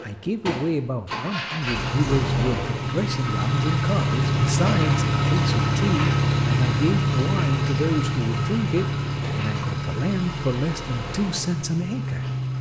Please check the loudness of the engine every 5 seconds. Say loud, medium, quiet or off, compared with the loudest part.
loud, loud, medium.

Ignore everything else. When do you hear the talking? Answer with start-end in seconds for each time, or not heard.
0.0-12.3.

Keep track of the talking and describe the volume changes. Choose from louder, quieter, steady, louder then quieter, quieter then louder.
steady.